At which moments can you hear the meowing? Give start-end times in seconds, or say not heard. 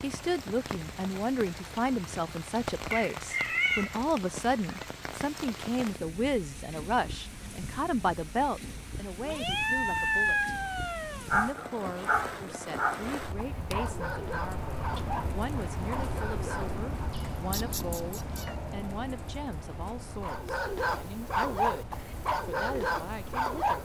2.9-4.8, 9.2-11.3, 17.1-18.6.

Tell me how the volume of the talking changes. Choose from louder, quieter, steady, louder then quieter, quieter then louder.
quieter.